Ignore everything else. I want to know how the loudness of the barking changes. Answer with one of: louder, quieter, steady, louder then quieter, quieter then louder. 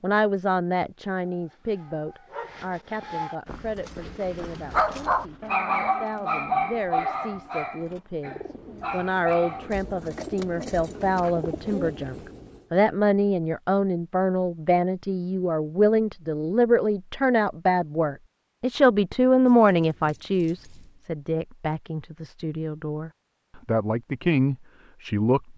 louder then quieter.